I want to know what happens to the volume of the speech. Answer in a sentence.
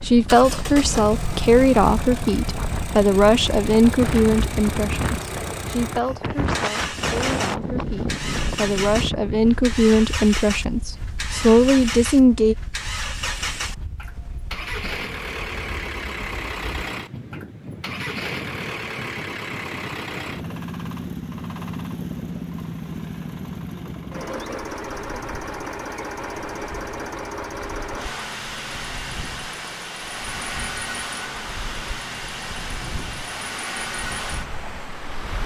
The volume of the speech goes down, then up.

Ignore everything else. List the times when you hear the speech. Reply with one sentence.
The speech can be heard from 0.0 to 12.6 s.